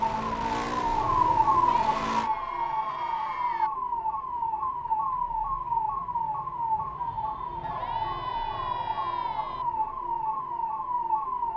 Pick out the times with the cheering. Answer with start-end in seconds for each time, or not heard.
1.6-3.7, 7.6-9.7.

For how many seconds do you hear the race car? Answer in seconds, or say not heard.
2 s.